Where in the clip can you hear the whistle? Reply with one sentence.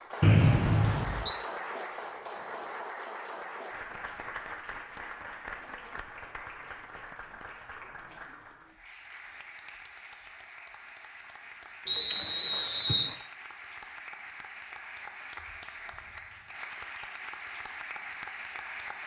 You can hear the whistle from 0.2 to 1.4 s and from 11.8 to 13.2 s.